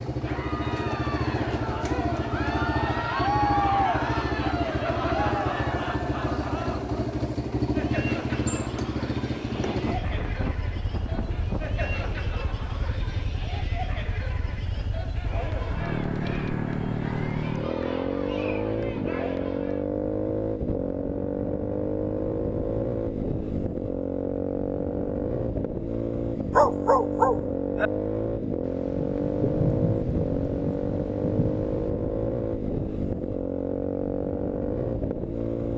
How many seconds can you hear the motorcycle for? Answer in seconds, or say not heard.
36 s.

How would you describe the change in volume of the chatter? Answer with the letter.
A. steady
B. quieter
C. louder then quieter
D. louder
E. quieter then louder
B.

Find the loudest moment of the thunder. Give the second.
30 s.